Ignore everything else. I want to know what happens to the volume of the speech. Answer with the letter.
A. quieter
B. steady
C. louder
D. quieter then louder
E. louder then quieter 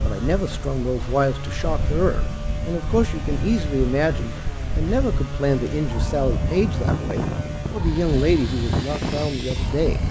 B.